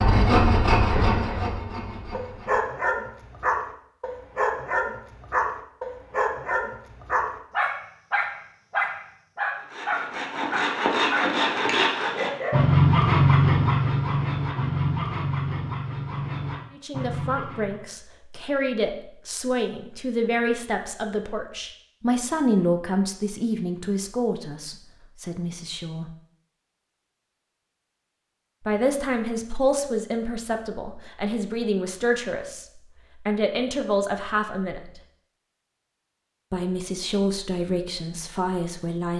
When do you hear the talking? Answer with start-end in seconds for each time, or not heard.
16.7-26.1, 28.6-35.0, 36.5-39.1.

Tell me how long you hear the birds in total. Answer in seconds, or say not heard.
not heard.